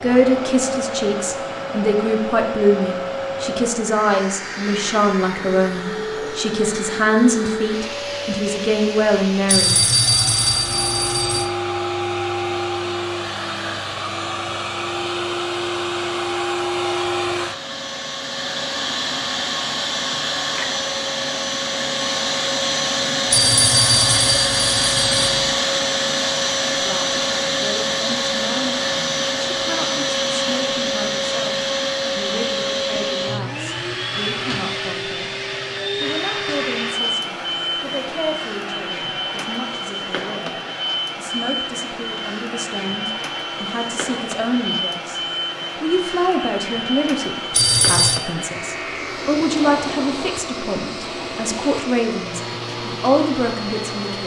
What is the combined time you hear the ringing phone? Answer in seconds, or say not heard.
5 s.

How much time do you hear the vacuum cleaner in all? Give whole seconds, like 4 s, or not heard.
54 s.